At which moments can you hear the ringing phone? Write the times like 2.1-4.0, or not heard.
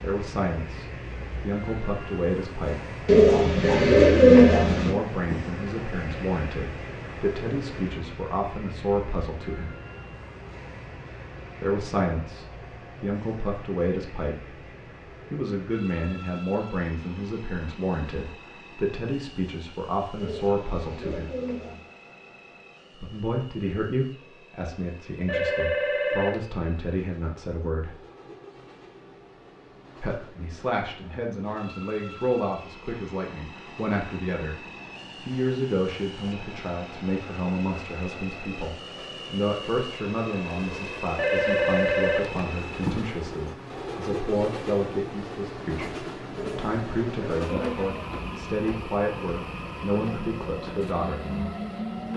3.6-5.5, 25.2-26.4, 41.1-43.0.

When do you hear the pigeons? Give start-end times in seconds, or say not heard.
3.0-5.0, 20.2-21.9, 46.4-48.4.